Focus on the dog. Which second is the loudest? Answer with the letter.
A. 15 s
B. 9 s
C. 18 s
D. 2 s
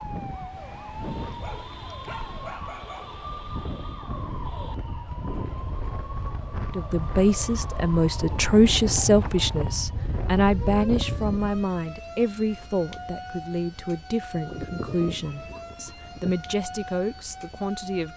A.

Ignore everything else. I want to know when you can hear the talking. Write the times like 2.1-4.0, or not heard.
6.5-18.1.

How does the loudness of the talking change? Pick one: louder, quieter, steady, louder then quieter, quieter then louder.
quieter.